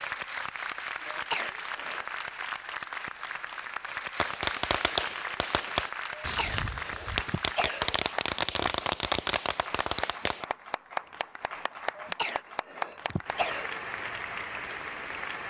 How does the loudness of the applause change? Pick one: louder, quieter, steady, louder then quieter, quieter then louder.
steady.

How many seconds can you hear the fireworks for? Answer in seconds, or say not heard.
6 s.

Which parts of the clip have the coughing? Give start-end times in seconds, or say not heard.
1.1-2.0, 6.2-8.0, 12.0-13.8.